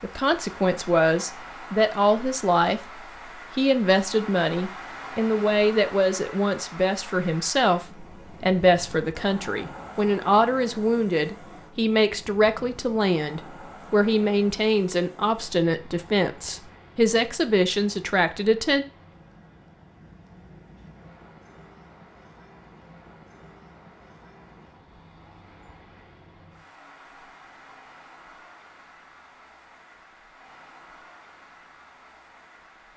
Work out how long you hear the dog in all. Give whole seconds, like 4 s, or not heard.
not heard.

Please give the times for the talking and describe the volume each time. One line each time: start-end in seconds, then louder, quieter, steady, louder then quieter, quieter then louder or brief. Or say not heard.
0.0-2.8 brief
3.5-18.9 steady.